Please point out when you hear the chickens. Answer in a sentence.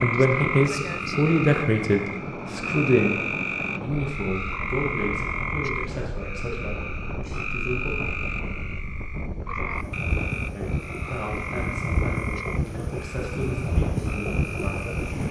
You can't hear the chickens here.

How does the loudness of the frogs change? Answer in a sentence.
The volume of the frogs goes down.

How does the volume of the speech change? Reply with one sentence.
The volume of the speech goes down.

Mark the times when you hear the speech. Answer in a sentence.
You can hear the speech from 0.0 to 8.0 s and from 10.5 to 15.2 s.